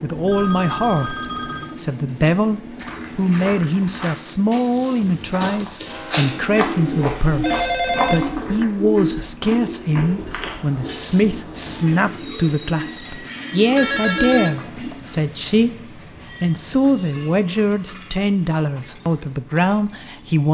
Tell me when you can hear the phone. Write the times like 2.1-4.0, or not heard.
0.1-1.8, 7.4-8.5, 13.8-14.9.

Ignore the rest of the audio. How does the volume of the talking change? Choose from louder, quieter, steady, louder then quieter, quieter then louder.
steady.